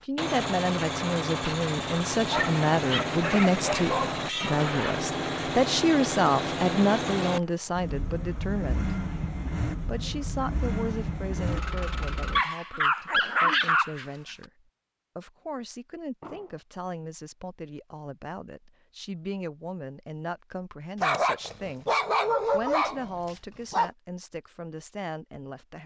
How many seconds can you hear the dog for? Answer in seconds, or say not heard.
7 s.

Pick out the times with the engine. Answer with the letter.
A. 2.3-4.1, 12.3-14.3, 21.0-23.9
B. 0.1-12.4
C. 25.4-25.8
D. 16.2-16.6
B.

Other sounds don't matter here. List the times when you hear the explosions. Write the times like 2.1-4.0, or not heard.
16.2-16.6.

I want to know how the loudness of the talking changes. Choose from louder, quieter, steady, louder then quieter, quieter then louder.
quieter.